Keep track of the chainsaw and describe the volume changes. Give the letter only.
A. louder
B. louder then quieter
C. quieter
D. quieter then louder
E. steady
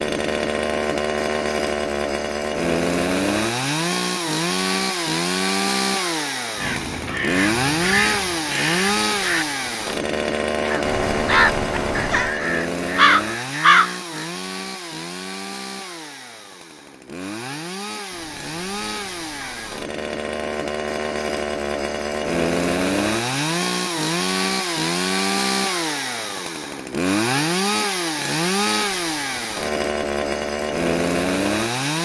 D.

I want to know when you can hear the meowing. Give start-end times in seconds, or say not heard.
10.8-12.4, 18.1-19.8.